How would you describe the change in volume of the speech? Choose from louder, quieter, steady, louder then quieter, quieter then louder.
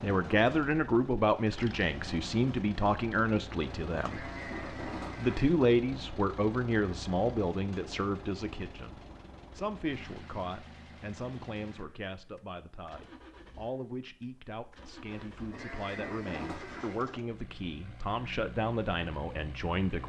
quieter then louder.